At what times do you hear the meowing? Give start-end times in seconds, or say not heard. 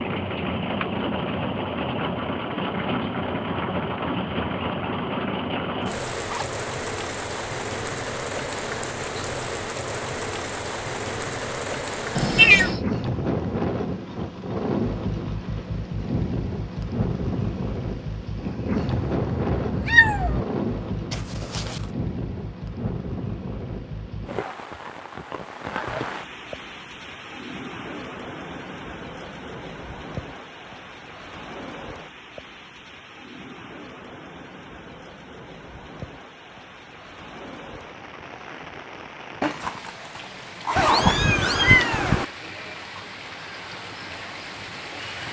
12.2-12.8, 18.8-20.4, 40.8-42.2.